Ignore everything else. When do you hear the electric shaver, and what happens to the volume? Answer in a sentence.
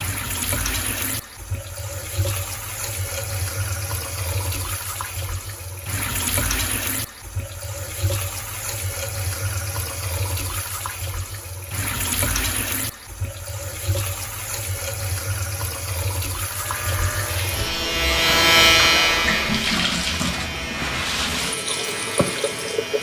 The electric shaver can be heard from 16.4 to 22.9 s, getting louder then quieter.